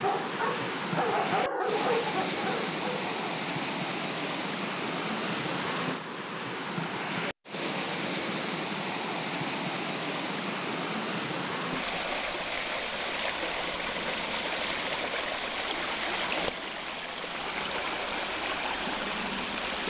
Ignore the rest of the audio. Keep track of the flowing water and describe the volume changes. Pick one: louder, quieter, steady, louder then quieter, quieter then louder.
steady.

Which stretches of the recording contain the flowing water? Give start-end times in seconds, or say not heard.
0.0-19.8.